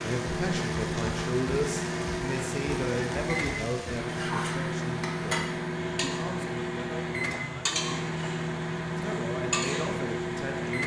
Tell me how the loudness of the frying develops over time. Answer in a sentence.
The loudness of the frying stays about the same.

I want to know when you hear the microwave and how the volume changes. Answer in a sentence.
You can hear the microwave from 0.0 to 10.8 s, at a steady volume.